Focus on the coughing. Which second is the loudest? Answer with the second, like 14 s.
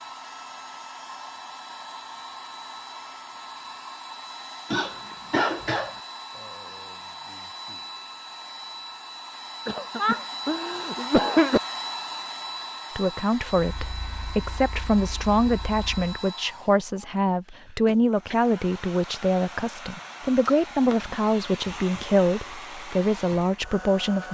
11 s.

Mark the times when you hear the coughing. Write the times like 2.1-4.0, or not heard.
4.7-5.9, 9.7-11.6, 17.5-18.4.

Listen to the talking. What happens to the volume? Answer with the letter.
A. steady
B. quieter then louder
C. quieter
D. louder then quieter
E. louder
A.